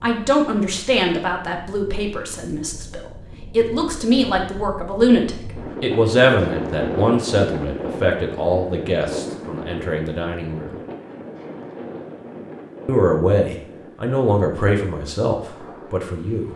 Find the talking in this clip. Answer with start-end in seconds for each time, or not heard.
0.0-10.8, 12.8-16.5.